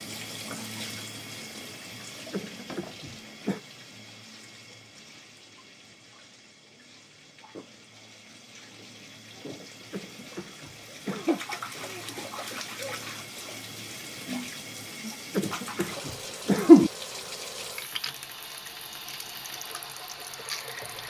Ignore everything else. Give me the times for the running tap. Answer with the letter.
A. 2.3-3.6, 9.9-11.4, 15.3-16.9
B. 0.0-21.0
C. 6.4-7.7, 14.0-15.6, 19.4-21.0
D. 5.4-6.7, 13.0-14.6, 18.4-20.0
B.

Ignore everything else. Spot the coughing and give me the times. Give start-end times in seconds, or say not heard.
2.3-3.6, 9.9-11.4, 15.3-16.9.